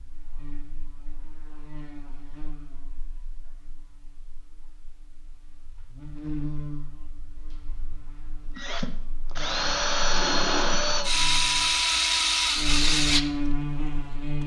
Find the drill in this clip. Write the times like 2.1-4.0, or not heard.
8.6-14.4.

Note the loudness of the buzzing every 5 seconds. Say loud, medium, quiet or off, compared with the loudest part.
quiet, medium, loud.